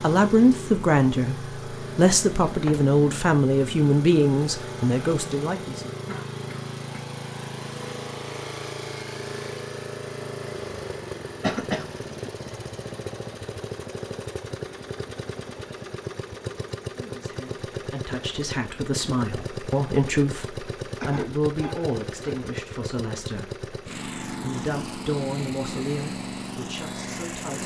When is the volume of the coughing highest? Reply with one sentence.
The volume of the coughing peaks at 12 seconds.